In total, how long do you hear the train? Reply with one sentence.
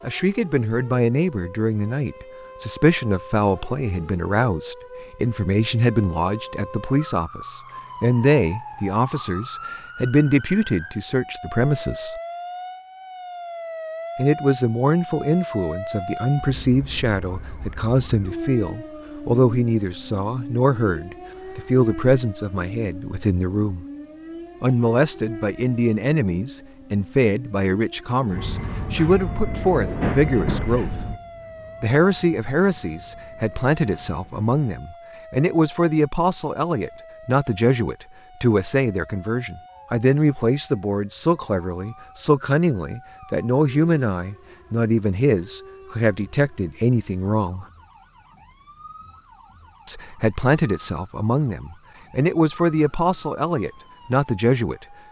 You can hear the train for 6 seconds altogether.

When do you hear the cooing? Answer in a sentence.
The cooing can't be heard in this clip.